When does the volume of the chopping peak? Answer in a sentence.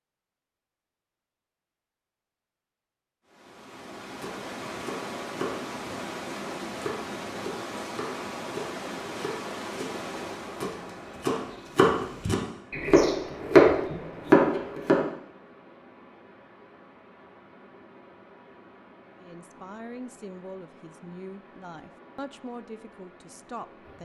The loudest moment of the chopping is at 14 seconds.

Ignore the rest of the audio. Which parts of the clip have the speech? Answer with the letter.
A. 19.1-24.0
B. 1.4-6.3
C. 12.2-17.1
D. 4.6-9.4
A.